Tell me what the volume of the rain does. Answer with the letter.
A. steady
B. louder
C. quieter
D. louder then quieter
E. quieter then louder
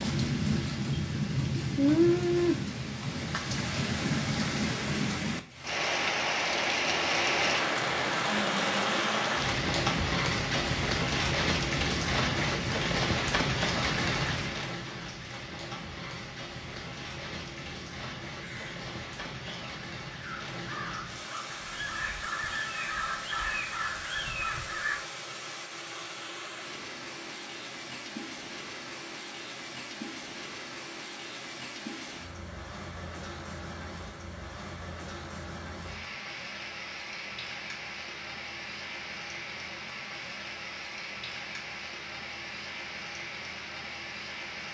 C.